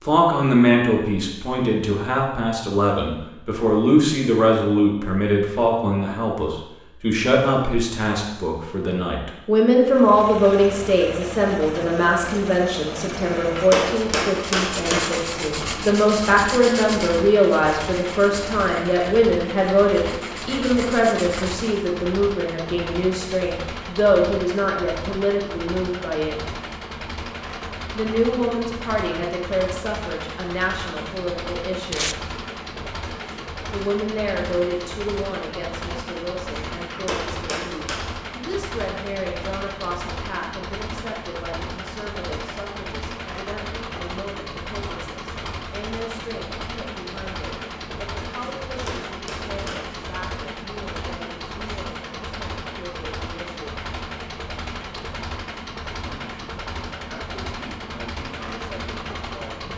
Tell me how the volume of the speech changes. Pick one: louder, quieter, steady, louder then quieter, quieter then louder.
quieter.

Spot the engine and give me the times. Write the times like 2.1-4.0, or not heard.
9.8-59.7.